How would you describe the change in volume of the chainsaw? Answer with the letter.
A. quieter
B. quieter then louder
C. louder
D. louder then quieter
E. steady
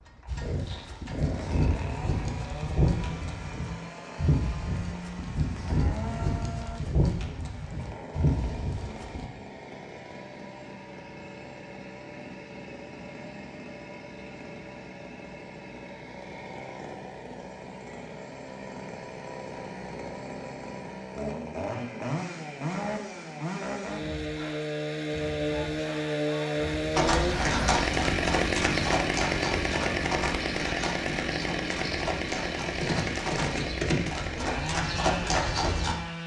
C.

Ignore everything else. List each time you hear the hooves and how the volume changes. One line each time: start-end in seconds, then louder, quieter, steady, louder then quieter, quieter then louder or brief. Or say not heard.
0.2-9.3 steady
26.9-36.0 quieter then louder.